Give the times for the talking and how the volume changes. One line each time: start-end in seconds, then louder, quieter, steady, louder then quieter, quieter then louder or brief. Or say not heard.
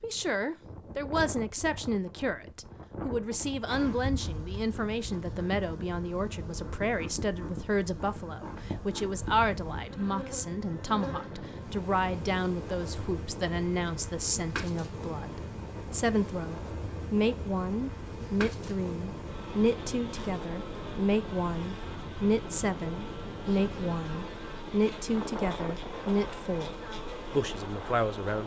0.0-28.4 steady.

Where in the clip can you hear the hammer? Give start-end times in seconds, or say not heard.
not heard.